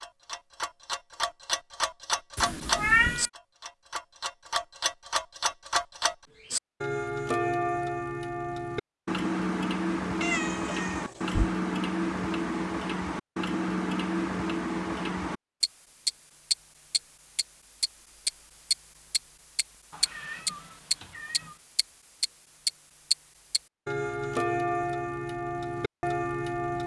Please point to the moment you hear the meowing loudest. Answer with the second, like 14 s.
3 s.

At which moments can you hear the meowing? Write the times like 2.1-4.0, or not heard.
2.4-3.3, 10.2-11.6, 19.9-21.6.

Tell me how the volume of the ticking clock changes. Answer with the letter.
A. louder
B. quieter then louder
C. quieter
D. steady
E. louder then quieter
D.